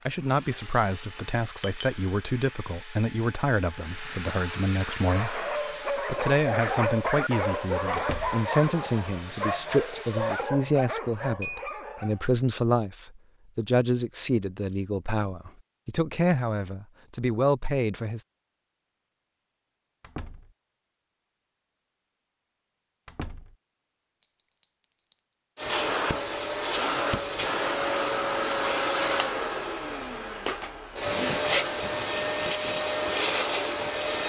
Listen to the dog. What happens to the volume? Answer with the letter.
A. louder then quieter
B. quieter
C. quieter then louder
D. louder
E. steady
B.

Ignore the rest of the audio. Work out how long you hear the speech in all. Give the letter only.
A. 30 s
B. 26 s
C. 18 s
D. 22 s
C.